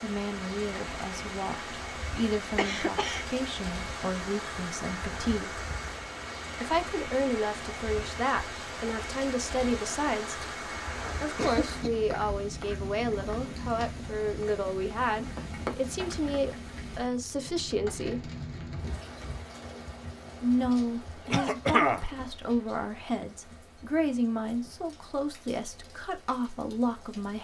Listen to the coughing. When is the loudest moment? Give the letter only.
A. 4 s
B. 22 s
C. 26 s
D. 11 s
B.